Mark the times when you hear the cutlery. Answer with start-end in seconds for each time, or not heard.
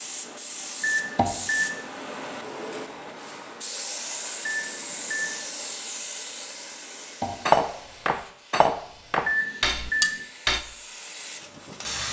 7.5-12.0.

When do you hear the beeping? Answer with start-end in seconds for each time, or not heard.
0.8-1.8, 4.5-5.4, 9.2-10.2.